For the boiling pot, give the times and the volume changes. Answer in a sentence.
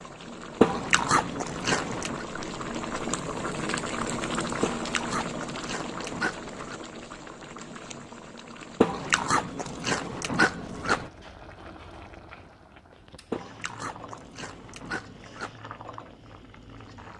The boiling pot can be heard from 0.0 to 17.1 s, getting quieter.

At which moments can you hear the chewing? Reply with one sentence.
You can hear the chewing from 0.6 to 2.2 s, from 4.6 to 6.8 s, from 8.8 to 11.1 s and from 13.3 to 15.6 s.